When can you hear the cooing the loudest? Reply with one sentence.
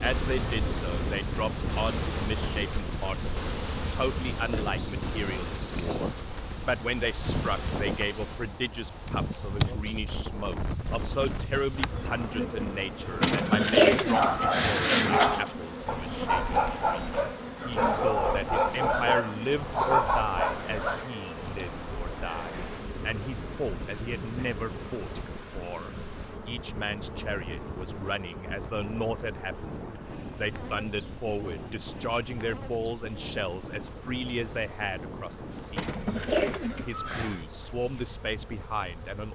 The volume of the cooing peaks at 14 seconds.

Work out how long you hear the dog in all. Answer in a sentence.
You can hear the dog for 7 seconds altogether.